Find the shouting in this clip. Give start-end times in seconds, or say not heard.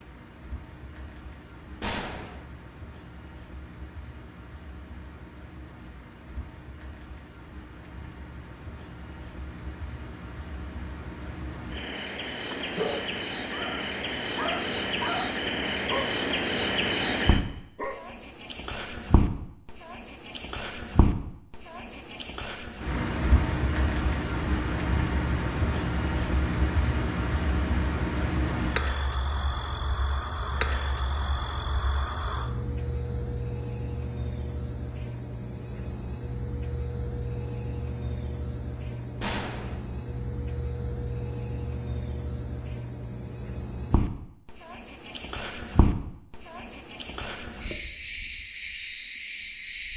not heard.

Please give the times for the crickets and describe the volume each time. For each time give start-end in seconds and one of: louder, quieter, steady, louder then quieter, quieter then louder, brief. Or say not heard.
0.0-49.9 louder.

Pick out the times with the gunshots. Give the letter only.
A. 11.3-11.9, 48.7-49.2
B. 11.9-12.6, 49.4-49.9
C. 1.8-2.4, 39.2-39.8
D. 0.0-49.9
C.